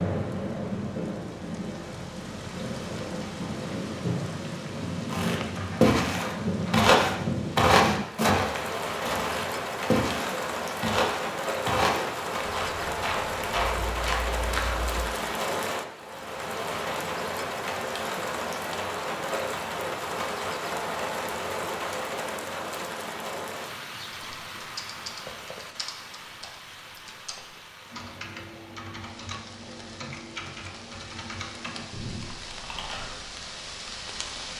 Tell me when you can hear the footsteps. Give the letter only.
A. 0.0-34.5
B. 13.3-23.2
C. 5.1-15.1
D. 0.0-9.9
C.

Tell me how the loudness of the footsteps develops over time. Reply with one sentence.
The loudness of the footsteps goes down.